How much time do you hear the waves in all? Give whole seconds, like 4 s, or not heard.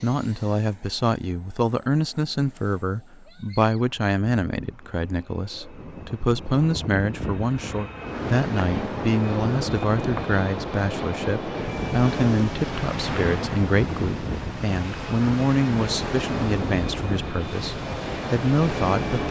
11 s.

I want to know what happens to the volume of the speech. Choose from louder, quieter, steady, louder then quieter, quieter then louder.
steady.